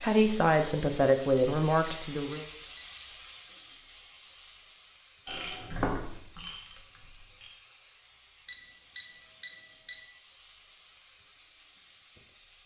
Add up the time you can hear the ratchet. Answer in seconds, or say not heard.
2 s.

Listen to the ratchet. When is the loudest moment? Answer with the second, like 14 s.
6 s.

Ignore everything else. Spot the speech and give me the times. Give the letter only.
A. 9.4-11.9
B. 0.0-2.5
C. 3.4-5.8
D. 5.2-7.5
B.